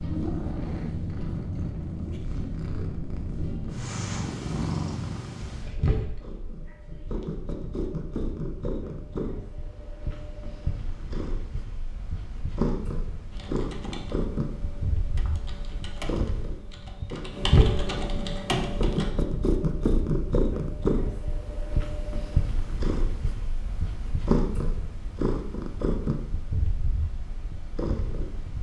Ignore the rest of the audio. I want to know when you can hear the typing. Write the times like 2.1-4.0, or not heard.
13.3-19.1.